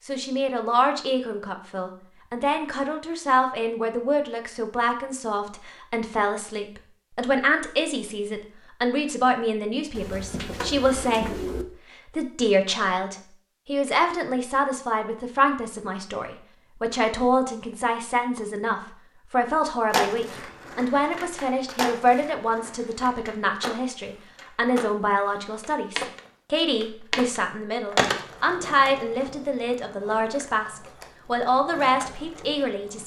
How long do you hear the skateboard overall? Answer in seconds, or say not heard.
13 s.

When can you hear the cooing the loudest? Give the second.
11 s.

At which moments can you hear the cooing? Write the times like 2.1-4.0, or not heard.
9.9-11.7.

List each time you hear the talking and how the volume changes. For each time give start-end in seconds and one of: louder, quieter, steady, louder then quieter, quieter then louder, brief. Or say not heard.
0.1-33.0 steady.